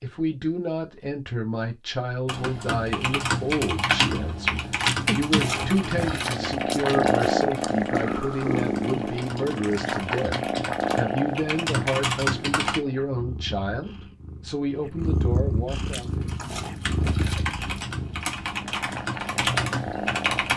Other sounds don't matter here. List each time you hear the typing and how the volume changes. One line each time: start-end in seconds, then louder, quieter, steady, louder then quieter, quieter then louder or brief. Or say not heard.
2.2-12.8 quieter then louder
16.0-20.5 louder.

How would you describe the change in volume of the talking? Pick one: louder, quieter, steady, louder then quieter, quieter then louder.
steady.